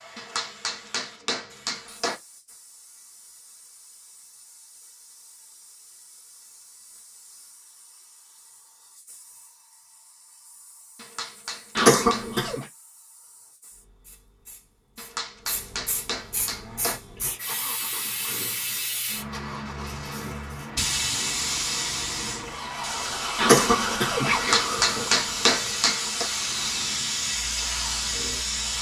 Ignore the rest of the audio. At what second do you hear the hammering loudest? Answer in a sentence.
The volume of the hammering peaks at 25 seconds.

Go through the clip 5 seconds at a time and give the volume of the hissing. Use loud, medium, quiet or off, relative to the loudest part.
quiet, quiet, quiet, medium, loud, loud.